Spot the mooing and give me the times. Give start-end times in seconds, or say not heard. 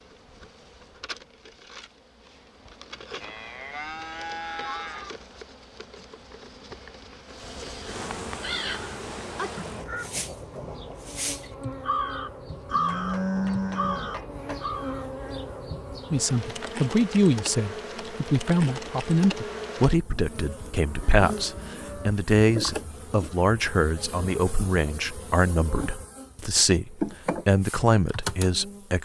3.2-5.2, 12.7-14.2, 20.4-22.1.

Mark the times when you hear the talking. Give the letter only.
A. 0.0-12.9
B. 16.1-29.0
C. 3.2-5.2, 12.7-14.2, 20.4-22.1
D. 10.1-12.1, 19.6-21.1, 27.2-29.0
B.